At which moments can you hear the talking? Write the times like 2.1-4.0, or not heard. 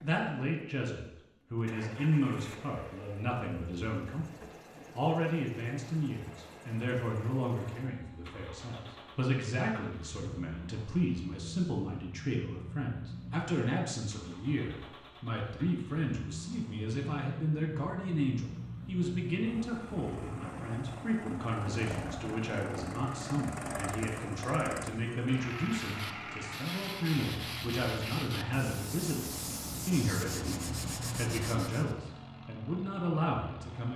0.0-4.3, 5.0-33.9.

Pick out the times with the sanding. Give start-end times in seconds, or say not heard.
25.7-31.9.